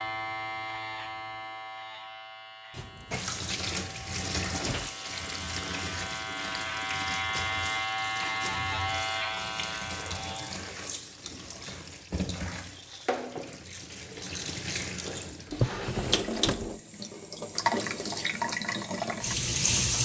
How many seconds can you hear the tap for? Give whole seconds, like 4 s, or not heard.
17 s.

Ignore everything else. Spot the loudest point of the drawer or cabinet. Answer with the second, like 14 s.
16 s.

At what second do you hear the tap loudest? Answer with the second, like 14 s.
20 s.